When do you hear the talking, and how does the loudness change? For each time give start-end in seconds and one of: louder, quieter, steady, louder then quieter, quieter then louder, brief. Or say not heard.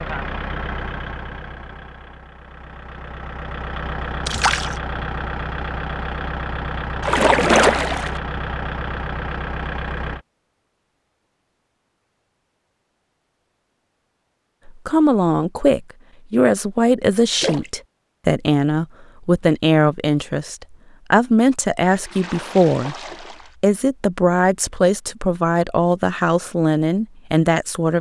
14.7-22.9 steady
23.6-27.9 steady.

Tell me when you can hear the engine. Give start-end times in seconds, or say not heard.
0.0-10.2.